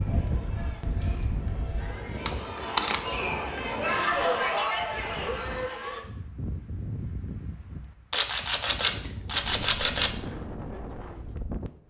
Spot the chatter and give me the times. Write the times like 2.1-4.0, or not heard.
0.0-6.0.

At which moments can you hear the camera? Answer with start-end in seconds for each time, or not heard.
2.2-3.0, 8.1-10.2.